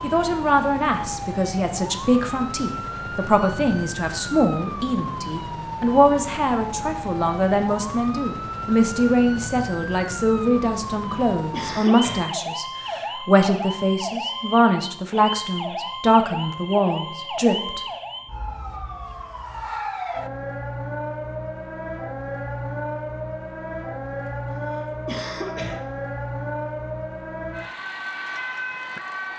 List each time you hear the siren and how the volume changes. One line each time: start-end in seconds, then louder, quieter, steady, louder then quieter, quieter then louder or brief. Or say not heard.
0.0-29.3 steady.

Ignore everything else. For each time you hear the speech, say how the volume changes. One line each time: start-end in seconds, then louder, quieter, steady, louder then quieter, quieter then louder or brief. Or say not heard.
0.0-17.8 steady.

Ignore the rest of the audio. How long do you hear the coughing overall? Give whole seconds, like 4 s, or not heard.
2 s.